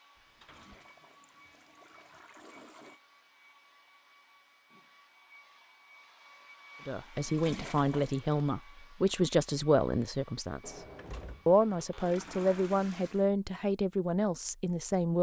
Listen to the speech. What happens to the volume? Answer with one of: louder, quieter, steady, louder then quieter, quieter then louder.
steady.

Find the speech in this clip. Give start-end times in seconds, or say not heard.
6.8-10.8, 11.4-15.1.